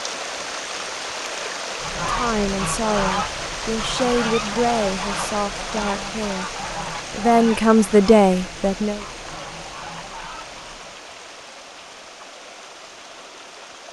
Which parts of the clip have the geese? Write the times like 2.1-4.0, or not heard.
1.8-11.1.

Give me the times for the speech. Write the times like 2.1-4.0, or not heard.
2.0-6.5, 7.1-9.1.